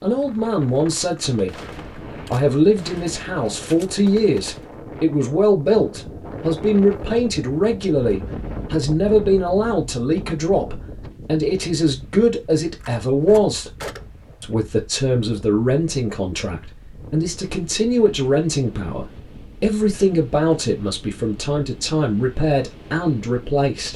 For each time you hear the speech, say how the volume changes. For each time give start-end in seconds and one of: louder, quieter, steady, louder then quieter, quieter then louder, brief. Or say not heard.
0.0-13.7 steady
14.4-23.9 steady.